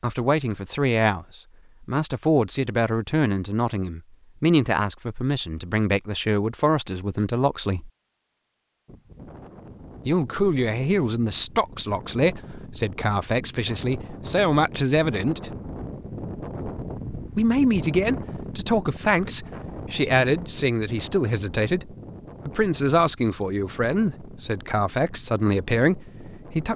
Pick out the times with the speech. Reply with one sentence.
The speech can be heard from 0.0 to 7.9 s, from 10.1 to 15.6 s and from 17.4 to 26.7 s.